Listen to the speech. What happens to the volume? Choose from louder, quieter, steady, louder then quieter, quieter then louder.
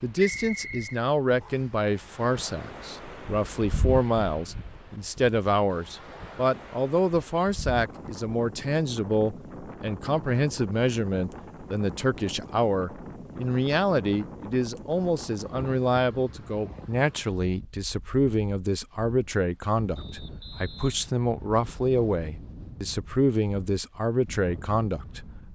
steady.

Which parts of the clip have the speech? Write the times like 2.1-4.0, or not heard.
0.0-25.4.